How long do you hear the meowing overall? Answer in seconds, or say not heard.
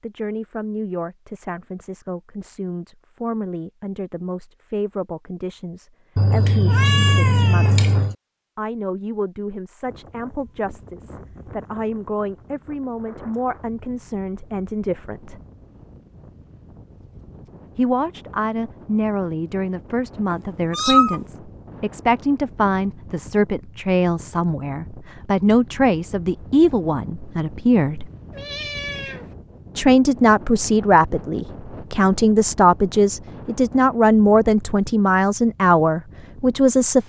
4 s.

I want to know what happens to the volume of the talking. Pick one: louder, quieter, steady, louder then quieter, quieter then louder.
louder.